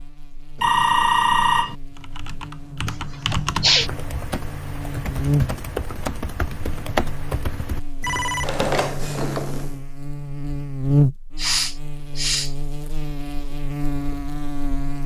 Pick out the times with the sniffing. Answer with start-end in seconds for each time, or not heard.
2.9-3.9, 11.3-12.5.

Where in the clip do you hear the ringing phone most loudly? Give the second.
1 s.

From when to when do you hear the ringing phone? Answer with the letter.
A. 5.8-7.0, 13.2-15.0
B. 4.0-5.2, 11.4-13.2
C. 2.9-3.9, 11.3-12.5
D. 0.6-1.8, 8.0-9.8
D.